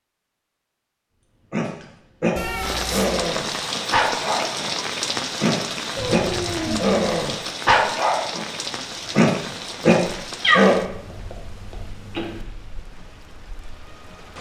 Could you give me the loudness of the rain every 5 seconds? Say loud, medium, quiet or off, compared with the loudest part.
loud, loud, quiet.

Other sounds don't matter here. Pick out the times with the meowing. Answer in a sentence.
The meowing can be heard from 2.4 to 3.1 s, from 6.0 to 7.1 s and from 10.4 to 12.4 s.